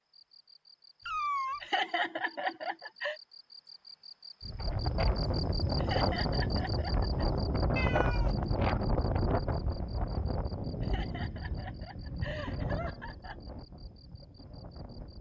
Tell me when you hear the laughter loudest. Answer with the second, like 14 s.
2 s.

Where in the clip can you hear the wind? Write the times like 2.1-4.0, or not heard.
4.4-15.1.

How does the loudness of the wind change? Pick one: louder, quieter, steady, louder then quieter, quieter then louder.
quieter.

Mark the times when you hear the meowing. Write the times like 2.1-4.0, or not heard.
1.1-1.6, 7.8-8.5.